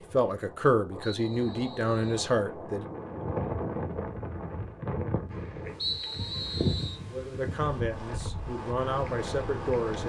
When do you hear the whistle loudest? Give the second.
6 s.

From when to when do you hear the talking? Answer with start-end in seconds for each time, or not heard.
0.1-2.9, 7.0-10.0.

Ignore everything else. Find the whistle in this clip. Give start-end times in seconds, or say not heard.
1.0-2.3, 5.8-7.0.